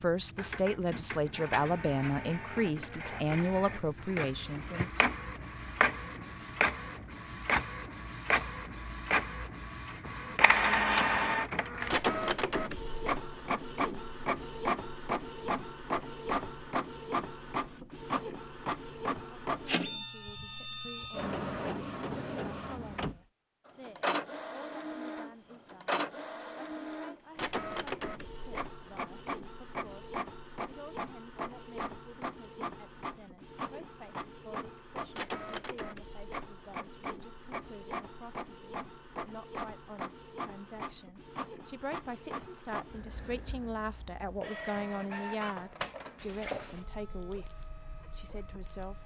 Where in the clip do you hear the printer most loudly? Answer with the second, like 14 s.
11 s.